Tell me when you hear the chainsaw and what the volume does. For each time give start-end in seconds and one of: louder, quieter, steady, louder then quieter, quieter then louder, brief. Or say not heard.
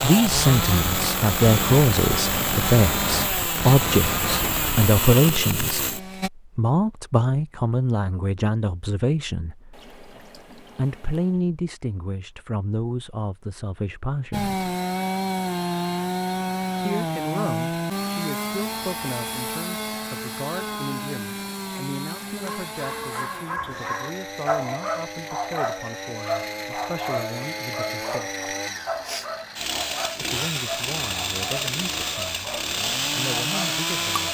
0.0-6.3 steady
14.3-34.2 quieter then louder.